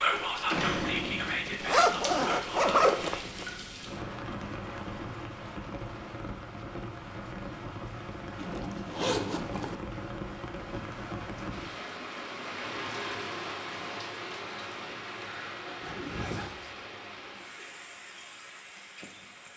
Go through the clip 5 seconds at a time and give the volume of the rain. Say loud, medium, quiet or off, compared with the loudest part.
loud, loud, loud, medium.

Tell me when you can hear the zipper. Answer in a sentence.
You can hear the zipper from 1.6 to 3.5 s, from 8.3 to 9.8 s and from 15.8 to 16.8 s.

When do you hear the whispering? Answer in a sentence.
The whispering can be heard from 0.0 to 3.2 s.